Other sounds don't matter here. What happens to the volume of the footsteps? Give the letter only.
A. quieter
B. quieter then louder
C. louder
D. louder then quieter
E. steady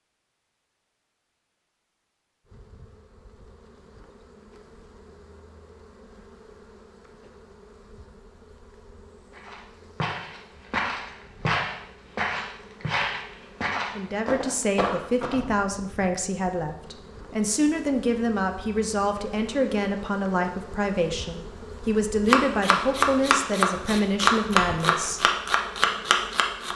E.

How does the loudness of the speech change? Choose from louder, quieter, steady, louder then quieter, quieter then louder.
steady.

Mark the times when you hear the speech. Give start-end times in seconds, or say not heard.
13.9-25.3.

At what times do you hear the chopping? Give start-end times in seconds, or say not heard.
22.2-26.7.